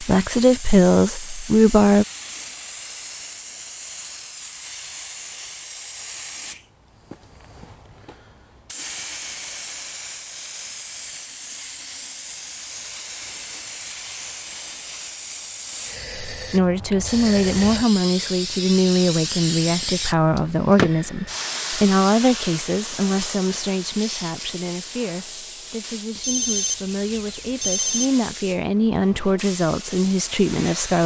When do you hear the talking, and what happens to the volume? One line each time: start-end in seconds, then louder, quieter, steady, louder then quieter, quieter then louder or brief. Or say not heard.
0.0-2.0 brief
16.4-31.0 quieter then louder.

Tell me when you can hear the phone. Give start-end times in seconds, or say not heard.
26.1-28.1.